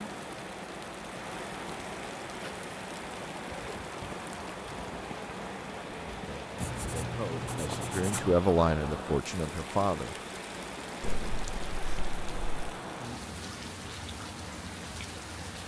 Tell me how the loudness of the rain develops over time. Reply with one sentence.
The volume of the rain stays about the same.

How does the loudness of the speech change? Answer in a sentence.
The loudness of the speech goes up, then down.